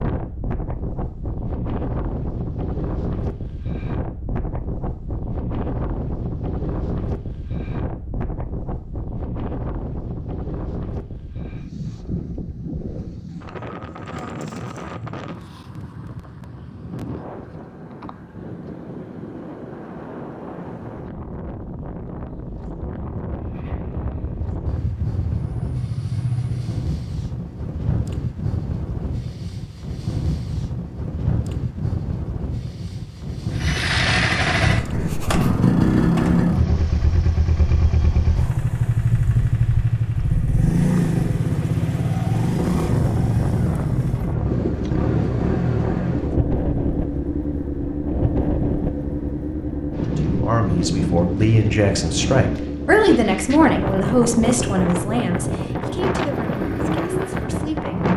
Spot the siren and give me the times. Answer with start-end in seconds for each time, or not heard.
not heard.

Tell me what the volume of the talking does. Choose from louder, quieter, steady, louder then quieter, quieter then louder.
quieter.